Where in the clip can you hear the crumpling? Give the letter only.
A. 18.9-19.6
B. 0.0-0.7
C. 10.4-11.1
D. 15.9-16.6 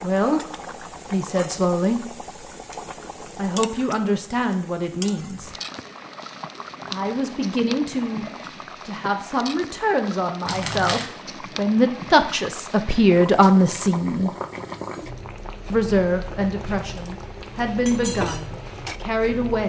C.